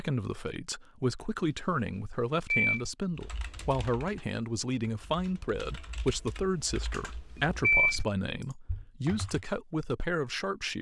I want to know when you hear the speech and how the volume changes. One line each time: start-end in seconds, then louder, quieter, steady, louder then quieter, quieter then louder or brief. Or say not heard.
0.0-10.7 steady.